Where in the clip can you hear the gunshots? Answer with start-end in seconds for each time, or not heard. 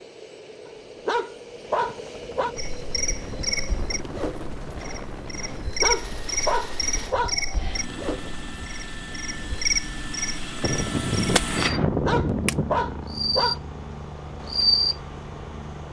10.6-12.7.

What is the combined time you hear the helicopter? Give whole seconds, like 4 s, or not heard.
16 s.